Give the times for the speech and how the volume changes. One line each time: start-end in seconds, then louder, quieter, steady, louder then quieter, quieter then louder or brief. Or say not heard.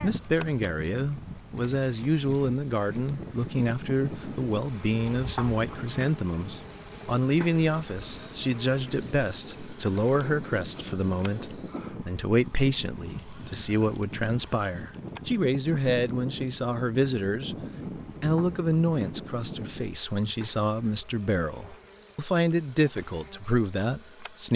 0.0-24.5 steady.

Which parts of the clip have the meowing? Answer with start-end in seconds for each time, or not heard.
not heard.